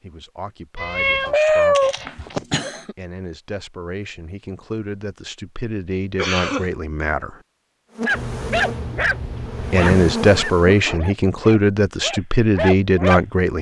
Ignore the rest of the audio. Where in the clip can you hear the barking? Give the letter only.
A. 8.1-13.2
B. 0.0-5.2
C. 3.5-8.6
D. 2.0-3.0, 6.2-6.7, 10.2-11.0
A.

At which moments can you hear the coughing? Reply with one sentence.
The coughing can be heard from 2.0 to 3.0 s, from 6.2 to 6.7 s and from 10.2 to 11.0 s.